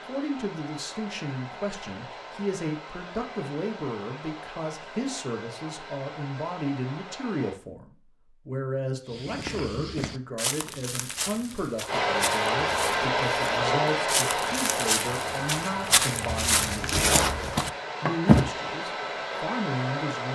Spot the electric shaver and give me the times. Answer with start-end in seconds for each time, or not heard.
not heard.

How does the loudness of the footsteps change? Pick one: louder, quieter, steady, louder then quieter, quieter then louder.
louder.